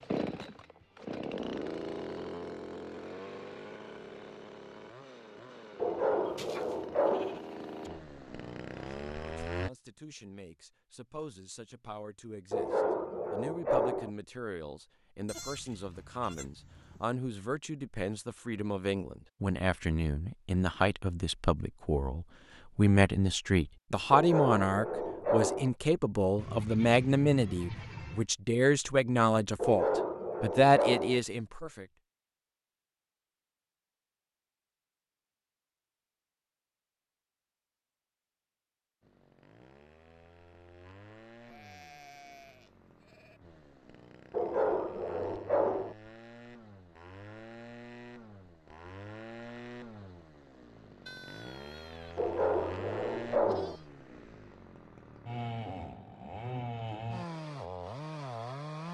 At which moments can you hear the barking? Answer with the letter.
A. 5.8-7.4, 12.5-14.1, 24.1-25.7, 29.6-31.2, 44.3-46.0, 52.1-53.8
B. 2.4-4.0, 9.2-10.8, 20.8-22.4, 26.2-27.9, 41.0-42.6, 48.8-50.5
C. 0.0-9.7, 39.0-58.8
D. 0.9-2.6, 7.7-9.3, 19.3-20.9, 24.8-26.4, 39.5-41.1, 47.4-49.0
A.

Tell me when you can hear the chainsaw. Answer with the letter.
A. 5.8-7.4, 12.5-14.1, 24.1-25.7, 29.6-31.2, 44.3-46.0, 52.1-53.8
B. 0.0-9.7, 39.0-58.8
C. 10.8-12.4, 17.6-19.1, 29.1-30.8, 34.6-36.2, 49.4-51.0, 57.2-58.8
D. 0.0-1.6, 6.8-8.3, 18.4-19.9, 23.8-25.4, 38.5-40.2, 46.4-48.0
B.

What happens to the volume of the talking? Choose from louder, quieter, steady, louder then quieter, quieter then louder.
louder.